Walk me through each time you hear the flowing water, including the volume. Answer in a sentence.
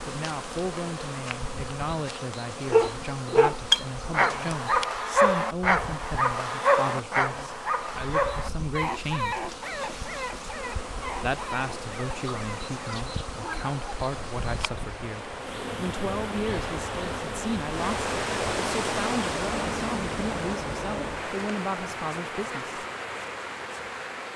The flowing water can be heard from 10.6 to 24.3 s, getting louder then quieter.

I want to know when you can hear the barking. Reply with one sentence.
The barking can be heard from 2.7 to 13.8 s.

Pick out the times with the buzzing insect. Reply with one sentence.
The buzzing insect can be heard from 0.0 to 24.3 s.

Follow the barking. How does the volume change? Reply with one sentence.
The volume of the barking goes down.